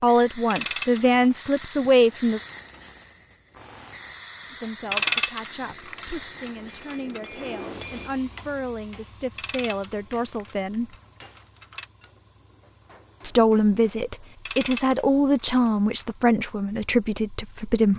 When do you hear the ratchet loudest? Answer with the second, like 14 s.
5 s.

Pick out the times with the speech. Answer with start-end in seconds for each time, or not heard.
0.0-2.4, 4.5-10.9, 13.2-17.9.